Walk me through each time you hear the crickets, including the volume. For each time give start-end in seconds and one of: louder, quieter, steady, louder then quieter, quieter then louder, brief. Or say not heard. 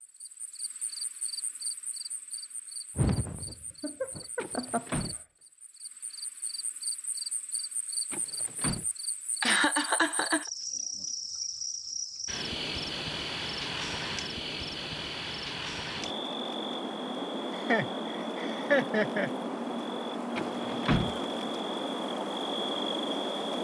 0.0-23.5 louder.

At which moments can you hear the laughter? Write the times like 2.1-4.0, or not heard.
3.0-5.0, 9.4-10.5, 17.5-19.3.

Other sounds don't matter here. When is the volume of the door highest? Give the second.
21 s.